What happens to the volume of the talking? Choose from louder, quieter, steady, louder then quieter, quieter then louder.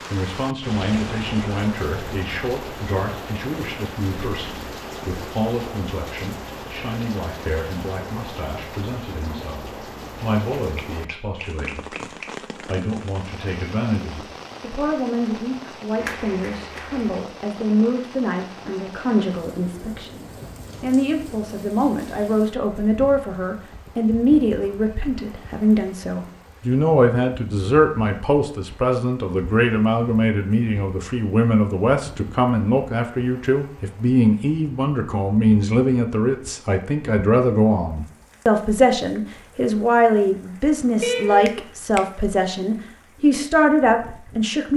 louder.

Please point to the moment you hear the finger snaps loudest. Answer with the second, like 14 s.
41 s.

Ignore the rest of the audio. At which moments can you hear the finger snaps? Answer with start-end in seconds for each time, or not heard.
10.6-12.3, 15.9-17.2, 41.0-42.0.